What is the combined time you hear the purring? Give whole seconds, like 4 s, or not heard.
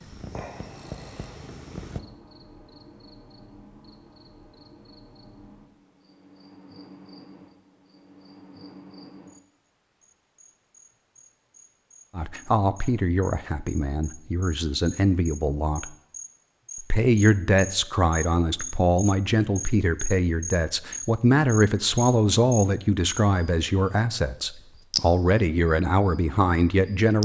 2 s.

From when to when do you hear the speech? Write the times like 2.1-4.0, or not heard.
12.2-15.9, 16.8-27.1.